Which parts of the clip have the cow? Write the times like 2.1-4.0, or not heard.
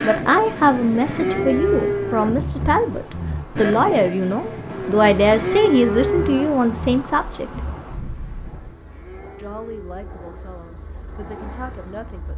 0.5-2.5, 4.7-6.5, 8.5-10.1.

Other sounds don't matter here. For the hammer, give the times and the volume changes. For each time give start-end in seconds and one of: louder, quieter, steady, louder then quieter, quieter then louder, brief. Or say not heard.
not heard.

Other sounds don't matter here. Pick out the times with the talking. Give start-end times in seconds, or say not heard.
0.0-7.6, 9.3-12.3.